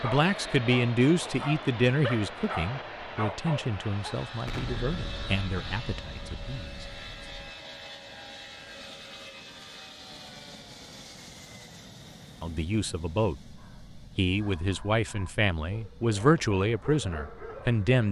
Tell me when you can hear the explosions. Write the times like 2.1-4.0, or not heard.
4.5-7.5.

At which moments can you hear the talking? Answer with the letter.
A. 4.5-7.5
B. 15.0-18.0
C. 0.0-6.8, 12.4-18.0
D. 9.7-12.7
C.